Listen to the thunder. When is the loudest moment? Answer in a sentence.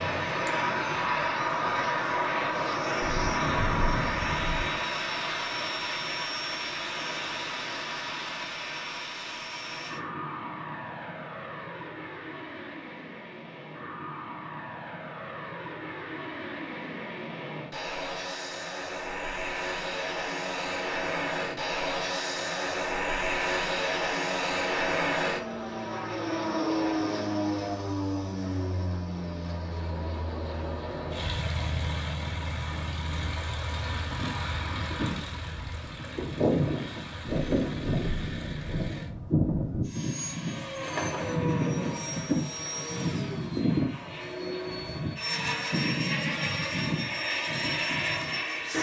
The volume of the thunder peaks at 4 seconds.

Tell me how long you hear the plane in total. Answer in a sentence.
You can hear the plane for 49 seconds altogether.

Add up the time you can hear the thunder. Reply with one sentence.
The thunder can be heard for 3 seconds in total.